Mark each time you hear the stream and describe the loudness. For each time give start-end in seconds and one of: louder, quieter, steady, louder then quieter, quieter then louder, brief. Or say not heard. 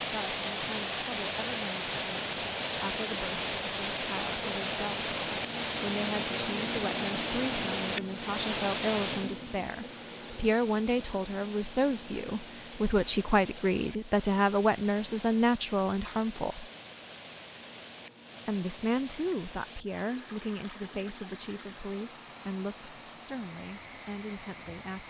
0.0-25.0 quieter.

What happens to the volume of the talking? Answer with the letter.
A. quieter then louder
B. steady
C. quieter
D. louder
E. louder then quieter
E.